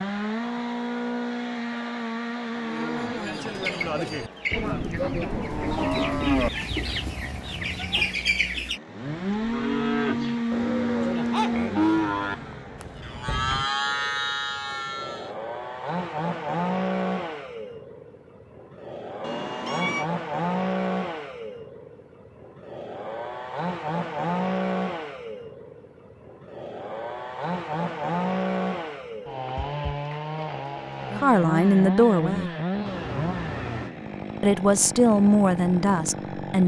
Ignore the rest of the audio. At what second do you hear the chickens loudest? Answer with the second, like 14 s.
8 s.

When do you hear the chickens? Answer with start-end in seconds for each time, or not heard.
3.4-8.8.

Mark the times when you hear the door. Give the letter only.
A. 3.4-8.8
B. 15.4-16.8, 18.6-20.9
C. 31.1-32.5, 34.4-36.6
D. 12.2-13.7
D.